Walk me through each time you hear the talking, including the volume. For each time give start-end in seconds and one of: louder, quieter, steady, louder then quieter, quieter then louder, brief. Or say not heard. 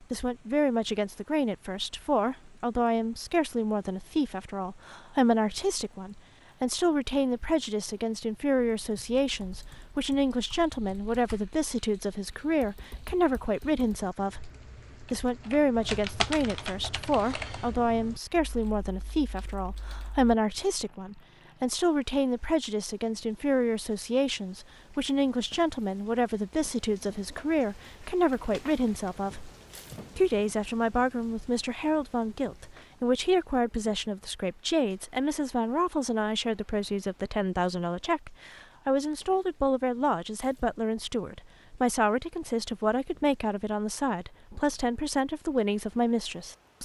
0.1-29.5 steady
30.1-46.7 steady.